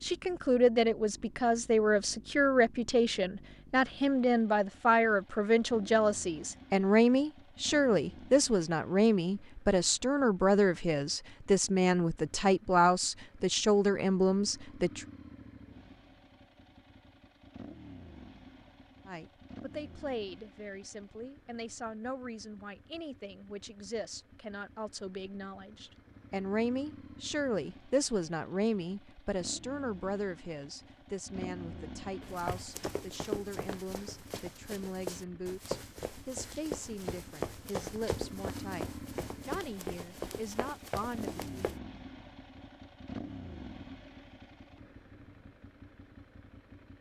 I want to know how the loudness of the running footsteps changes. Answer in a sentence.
The loudness of the running footsteps stays about the same.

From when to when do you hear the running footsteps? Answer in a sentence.
You can hear the running footsteps from 32.2 to 41.8 s.